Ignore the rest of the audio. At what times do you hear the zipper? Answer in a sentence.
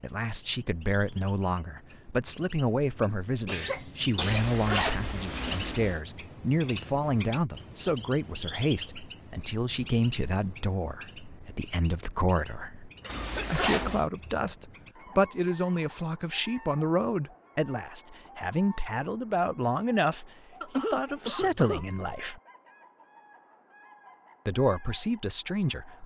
The zipper can be heard from 4.2 to 6.0 s and from 13.1 to 14.1 s.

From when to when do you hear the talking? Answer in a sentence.
You can hear the talking from 0.0 to 12.9 s, from 13.5 to 22.4 s and from 24.4 to 26.0 s.